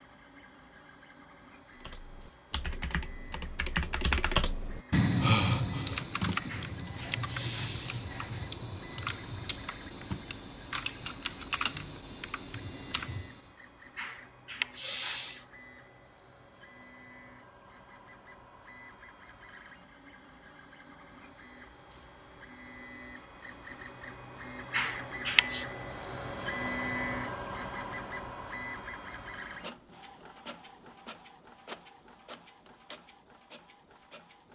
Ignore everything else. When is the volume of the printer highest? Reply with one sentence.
The volume of the printer peaks at 27 seconds.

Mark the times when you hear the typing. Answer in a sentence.
You can hear the typing from 1.8 to 13.5 s.